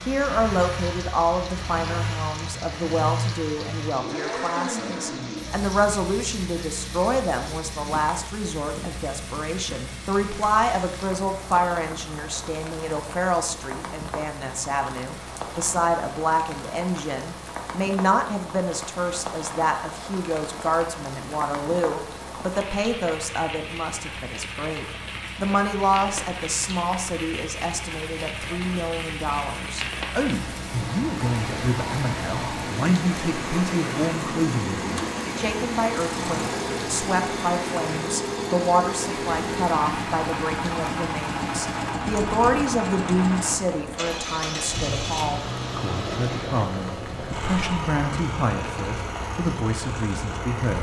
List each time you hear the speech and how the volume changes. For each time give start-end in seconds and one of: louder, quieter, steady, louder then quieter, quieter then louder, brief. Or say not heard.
0.1-50.7 steady.